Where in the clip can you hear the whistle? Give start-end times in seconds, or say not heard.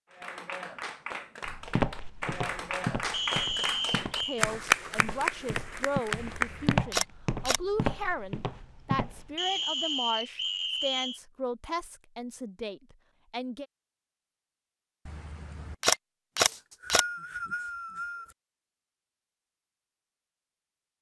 3.1-4.5, 9.3-11.2, 16.4-18.4.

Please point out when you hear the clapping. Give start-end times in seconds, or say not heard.
0.1-6.8.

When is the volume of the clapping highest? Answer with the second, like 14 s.
5 s.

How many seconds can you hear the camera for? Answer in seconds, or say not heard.
3 s.